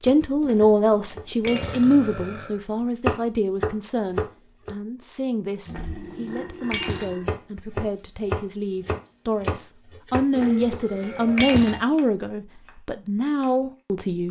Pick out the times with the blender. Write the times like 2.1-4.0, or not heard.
not heard.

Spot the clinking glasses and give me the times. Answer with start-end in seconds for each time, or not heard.
0.4-1.9, 5.7-7.2, 10.3-11.8.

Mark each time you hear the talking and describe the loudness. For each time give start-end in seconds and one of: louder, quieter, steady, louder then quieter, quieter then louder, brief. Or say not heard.
0.0-14.2 quieter then louder.